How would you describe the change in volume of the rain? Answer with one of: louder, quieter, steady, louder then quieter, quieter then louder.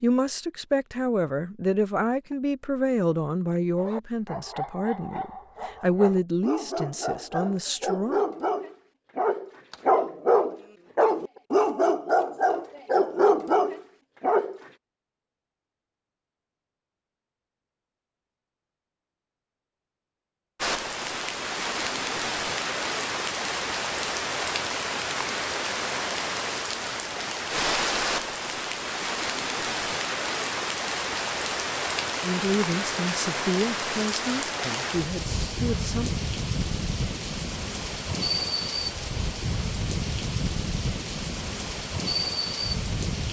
steady.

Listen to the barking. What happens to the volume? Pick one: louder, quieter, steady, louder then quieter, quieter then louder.
louder.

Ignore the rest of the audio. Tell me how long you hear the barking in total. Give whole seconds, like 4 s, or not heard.
11 s.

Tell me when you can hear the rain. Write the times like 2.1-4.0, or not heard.
20.6-43.2.